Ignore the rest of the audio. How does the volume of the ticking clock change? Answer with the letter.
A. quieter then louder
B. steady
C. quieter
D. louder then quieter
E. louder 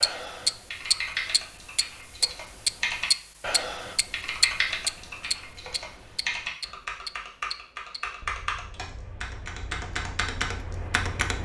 C.